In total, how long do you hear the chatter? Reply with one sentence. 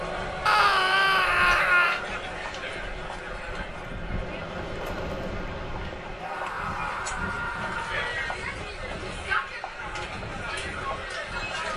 You can hear the chatter for 12 seconds altogether.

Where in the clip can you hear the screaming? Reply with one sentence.
The screaming can be heard from 0.5 to 2.0 s and from 6.2 to 8.2 s.